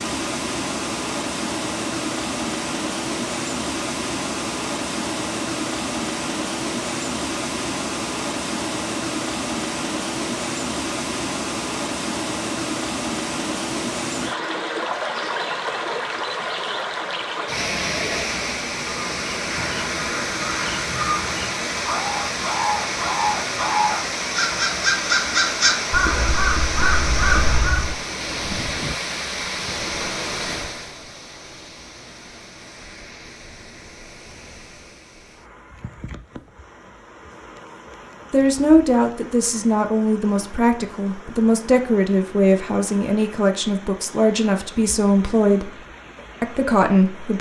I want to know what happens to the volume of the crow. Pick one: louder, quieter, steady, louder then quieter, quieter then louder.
louder.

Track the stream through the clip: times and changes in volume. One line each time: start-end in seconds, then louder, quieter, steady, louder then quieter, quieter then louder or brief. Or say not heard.
0.0-47.3 quieter.